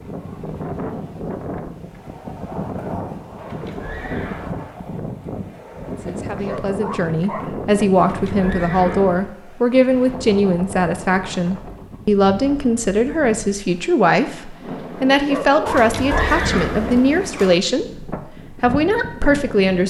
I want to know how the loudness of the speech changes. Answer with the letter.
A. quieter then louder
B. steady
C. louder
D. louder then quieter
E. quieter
B.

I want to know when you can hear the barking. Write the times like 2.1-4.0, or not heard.
6.3-7.5, 15.2-16.3.